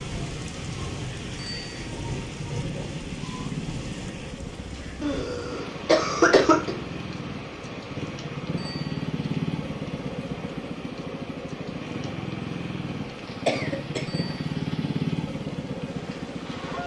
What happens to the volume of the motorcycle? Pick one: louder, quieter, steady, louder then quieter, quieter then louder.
louder.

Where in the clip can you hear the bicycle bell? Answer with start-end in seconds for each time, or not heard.
1.4-1.9, 8.6-9.1, 14.1-14.5.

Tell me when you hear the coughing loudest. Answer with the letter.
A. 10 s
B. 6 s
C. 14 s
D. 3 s
B.